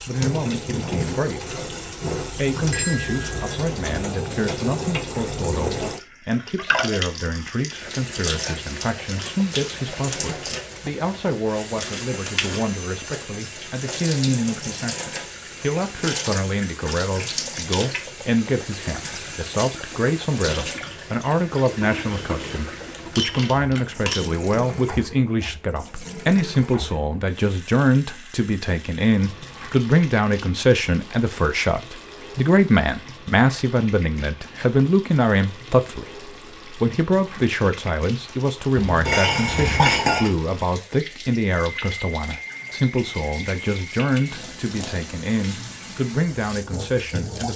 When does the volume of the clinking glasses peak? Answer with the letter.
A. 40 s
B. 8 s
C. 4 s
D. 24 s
A.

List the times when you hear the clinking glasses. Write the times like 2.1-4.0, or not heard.
2.7-3.5, 22.2-24.2, 38.8-40.3.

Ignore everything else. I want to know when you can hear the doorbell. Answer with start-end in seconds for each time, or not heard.
not heard.